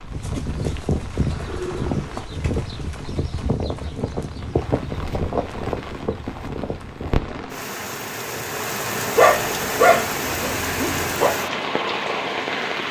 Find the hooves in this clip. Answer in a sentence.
You can hear the hooves from 0.0 to 7.5 s.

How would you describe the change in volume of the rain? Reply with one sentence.
The loudness of the rain goes up.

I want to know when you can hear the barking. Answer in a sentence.
You can hear the barking from 9.2 to 11.3 s.